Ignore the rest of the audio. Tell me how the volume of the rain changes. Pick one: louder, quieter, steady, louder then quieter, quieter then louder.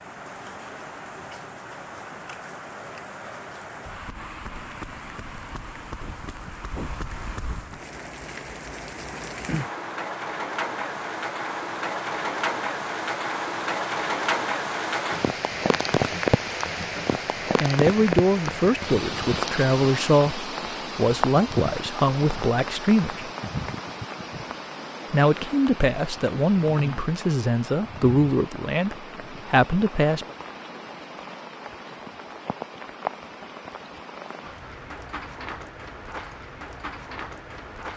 louder then quieter.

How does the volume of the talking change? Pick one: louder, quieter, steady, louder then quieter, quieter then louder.
steady.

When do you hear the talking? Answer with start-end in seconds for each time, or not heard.
17.6-23.3, 25.1-30.4.